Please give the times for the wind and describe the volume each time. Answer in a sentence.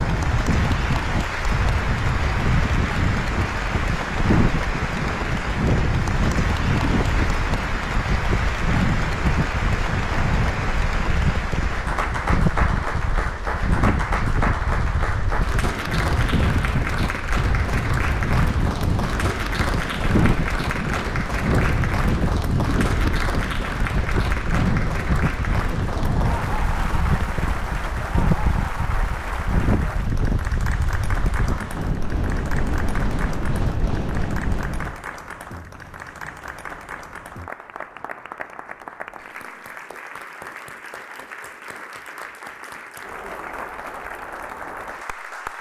You can hear the wind from 0.0 to 35.0 s, at a steady volume.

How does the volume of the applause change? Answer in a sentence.
The volume of the applause goes down.